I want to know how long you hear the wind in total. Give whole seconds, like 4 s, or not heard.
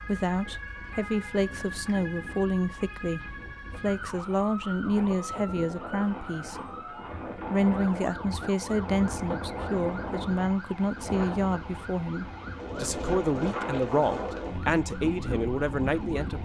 16 s.